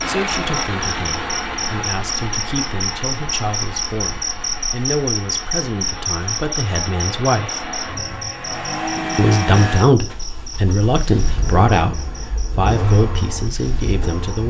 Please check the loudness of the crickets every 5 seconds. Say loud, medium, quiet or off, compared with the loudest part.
loud, loud, quiet.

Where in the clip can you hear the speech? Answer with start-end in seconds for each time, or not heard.
0.1-7.7, 9.2-14.4.